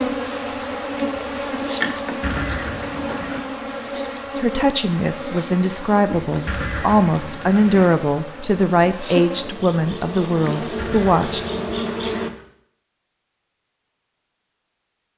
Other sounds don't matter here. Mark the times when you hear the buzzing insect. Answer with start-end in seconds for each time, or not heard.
0.0-12.3.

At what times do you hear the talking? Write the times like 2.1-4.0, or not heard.
4.3-11.4.